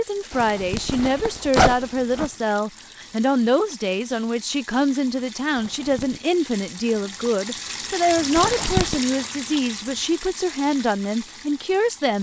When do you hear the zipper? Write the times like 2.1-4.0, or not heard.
0.3-2.3, 5.5-6.2, 8.3-9.0.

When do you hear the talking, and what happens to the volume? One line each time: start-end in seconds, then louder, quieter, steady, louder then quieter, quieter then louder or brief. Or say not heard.
0.0-12.1 steady.